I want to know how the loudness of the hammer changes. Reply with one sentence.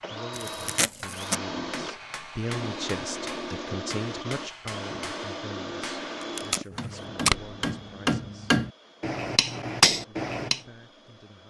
The volume of the hammer goes up.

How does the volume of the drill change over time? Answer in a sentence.
The loudness of the drill goes down.